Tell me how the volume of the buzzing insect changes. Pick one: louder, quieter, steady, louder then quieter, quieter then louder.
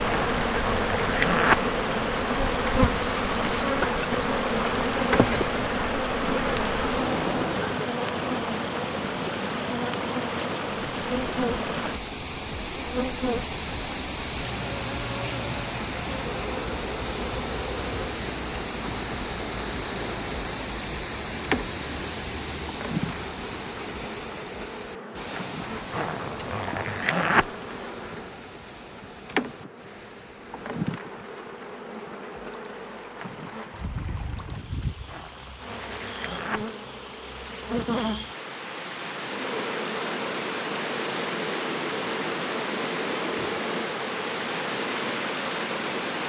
quieter.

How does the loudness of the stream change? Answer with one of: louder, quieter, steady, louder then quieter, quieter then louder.
quieter then louder.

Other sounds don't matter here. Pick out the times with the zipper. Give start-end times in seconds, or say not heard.
0.1-1.6, 25.9-27.5, 35.0-36.6.